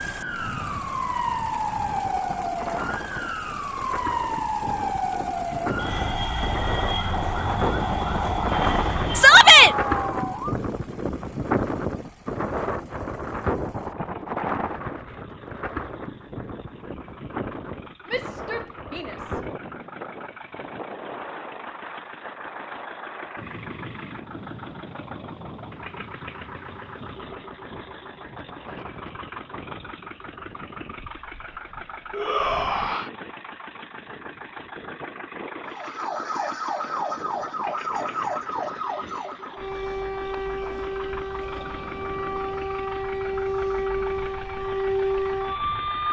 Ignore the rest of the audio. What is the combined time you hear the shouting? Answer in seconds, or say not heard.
3 s.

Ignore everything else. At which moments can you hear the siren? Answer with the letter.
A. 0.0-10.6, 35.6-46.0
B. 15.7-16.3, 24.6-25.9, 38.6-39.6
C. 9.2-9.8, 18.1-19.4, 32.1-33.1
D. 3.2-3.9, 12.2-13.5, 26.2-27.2
A.